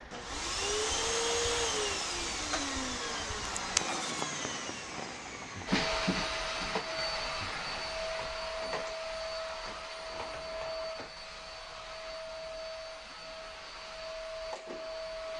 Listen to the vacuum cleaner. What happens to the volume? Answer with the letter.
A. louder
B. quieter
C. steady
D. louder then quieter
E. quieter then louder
B.